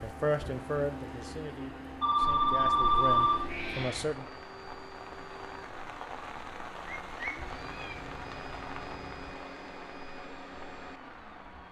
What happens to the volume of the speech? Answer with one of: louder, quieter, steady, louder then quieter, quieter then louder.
quieter then louder.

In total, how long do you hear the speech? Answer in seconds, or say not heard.
4 s.